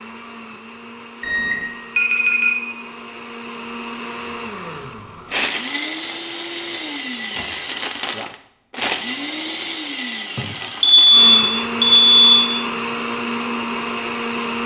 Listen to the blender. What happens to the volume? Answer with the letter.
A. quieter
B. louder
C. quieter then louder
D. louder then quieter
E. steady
B.